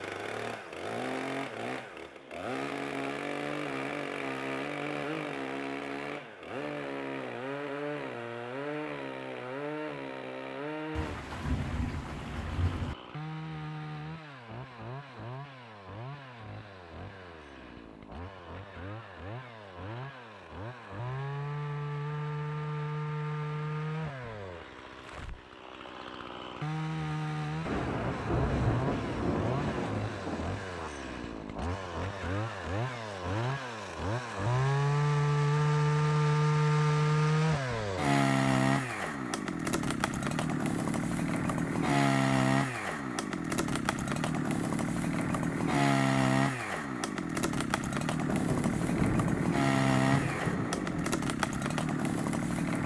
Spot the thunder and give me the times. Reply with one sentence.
You can hear the thunder from 10.9 to 12.9 s, from 27.6 to 30.9 s and from 48.3 to 51.1 s.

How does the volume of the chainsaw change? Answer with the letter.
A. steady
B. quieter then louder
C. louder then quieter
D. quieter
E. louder
B.